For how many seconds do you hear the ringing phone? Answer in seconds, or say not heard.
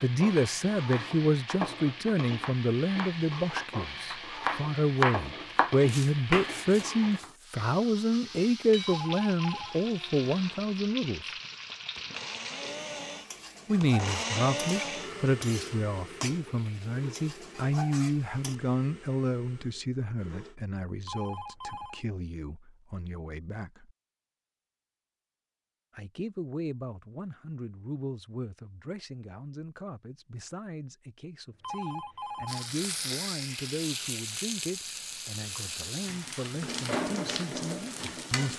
3 s.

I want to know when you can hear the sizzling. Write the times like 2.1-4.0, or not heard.
0.0-18.6, 32.5-38.5.